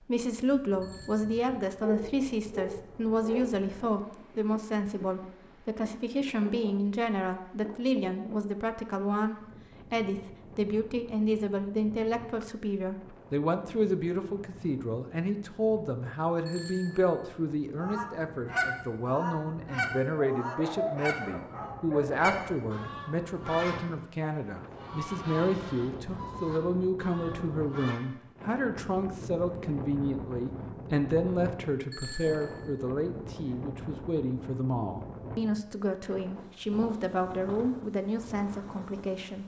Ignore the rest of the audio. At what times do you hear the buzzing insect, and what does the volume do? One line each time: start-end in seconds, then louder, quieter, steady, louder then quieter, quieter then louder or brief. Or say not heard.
not heard.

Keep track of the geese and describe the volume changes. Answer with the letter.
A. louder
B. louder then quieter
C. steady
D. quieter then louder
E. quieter
E.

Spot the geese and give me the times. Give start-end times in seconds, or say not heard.
17.8-28.0.